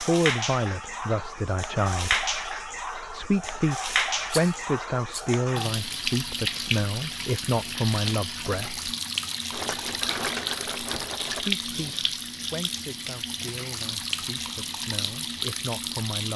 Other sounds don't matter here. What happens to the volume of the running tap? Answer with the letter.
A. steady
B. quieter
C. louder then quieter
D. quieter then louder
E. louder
A.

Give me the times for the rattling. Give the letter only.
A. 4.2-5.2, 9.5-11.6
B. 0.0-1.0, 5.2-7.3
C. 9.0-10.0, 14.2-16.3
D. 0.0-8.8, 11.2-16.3
A.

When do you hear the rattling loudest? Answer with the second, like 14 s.
10 s.